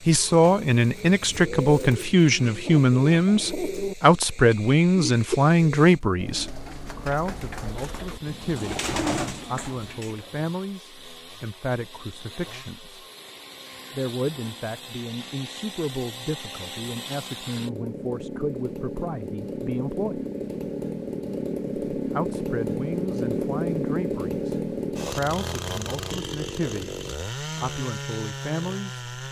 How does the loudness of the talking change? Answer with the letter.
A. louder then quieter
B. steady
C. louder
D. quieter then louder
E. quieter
E.